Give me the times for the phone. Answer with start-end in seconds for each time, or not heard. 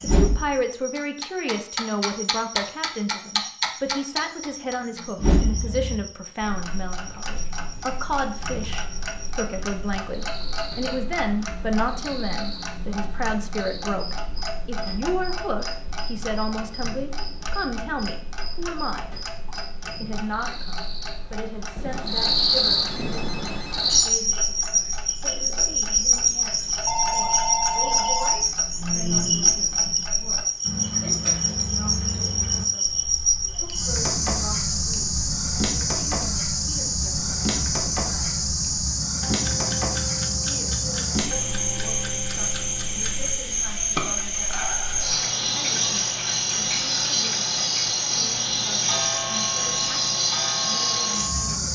21.8-23.8, 26.9-28.5.